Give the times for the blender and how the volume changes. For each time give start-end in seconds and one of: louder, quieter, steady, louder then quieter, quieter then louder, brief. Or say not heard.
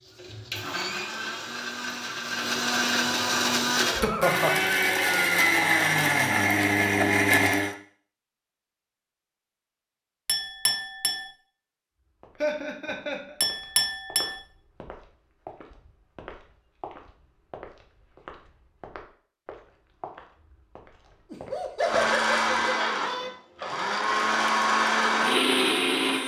0.0-7.8 louder
21.8-26.2 quieter then louder.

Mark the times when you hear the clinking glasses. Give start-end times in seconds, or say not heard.
10.2-11.3, 13.4-14.4.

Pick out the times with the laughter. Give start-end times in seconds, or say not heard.
3.8-4.7, 12.4-13.3, 21.3-23.3.